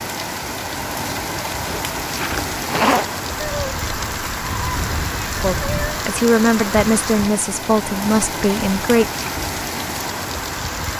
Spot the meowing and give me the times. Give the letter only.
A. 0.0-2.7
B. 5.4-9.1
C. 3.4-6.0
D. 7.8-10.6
C.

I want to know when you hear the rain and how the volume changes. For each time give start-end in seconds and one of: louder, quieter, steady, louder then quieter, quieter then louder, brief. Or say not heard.
0.0-10.9 steady.